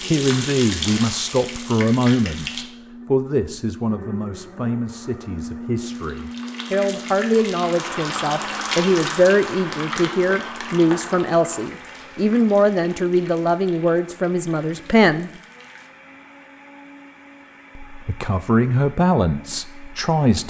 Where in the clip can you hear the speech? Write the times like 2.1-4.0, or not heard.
0.1-15.3, 17.9-20.4.